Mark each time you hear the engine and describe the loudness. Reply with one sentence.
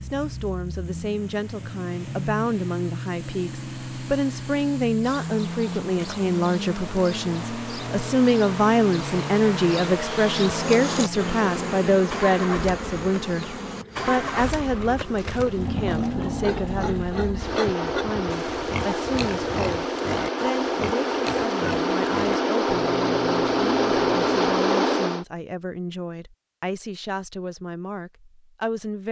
You can hear the engine from 0.0 to 25.2 s, getting louder.